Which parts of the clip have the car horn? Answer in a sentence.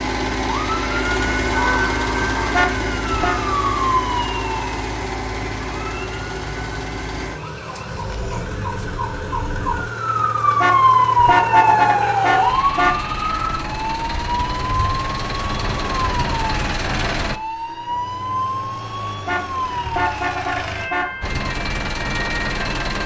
The car horn can be heard from 2.5 to 3.4 s, from 10.6 to 12.9 s and from 19.2 to 21.1 s.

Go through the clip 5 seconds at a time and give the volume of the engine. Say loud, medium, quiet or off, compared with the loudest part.
loud, medium, medium, loud, loud.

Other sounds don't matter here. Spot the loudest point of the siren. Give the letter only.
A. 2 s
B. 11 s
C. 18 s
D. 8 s
B.